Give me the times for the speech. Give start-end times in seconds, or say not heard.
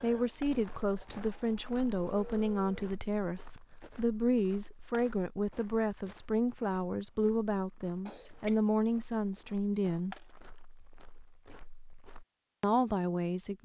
0.0-10.2, 12.6-13.5.